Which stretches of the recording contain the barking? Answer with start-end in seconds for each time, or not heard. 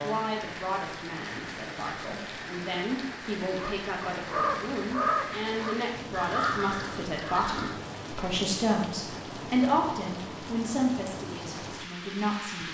not heard.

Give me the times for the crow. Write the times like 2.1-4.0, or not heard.
3.6-7.8.